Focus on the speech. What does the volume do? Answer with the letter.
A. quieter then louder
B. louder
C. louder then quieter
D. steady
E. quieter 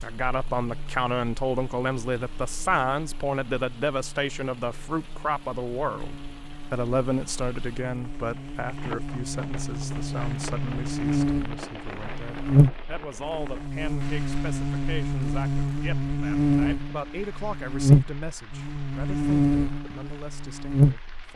E.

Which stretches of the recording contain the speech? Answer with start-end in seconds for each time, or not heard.
0.0-21.3.